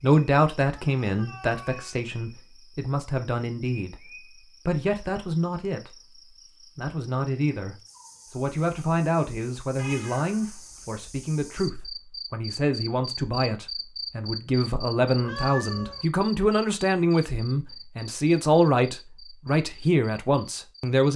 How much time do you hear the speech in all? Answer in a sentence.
The speech can be heard for 21 seconds in total.